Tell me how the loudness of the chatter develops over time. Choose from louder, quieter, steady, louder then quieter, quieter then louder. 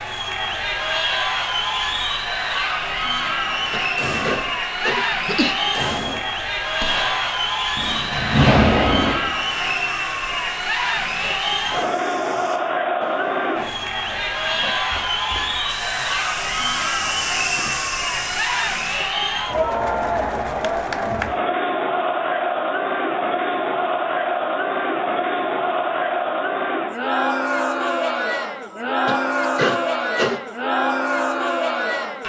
steady.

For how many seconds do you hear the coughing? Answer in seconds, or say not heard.
4 s.